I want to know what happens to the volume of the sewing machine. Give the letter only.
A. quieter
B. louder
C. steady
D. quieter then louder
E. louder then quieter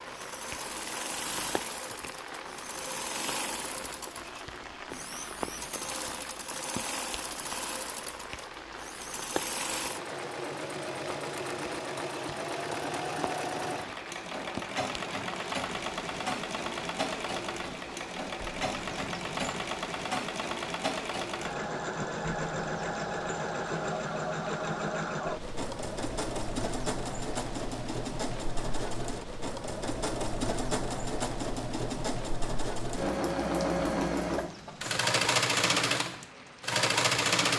B.